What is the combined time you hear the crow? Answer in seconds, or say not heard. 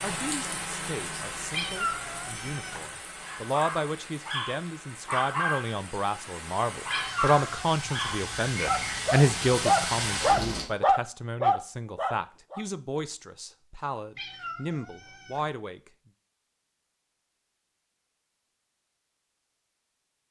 not heard.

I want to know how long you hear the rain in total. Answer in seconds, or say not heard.
11 s.